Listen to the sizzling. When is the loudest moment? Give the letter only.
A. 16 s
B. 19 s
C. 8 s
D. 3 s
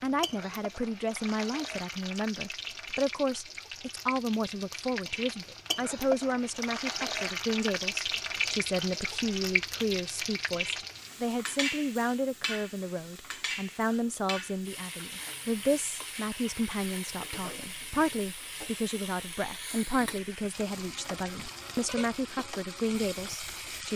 C.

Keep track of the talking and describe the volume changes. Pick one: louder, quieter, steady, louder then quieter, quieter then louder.
steady.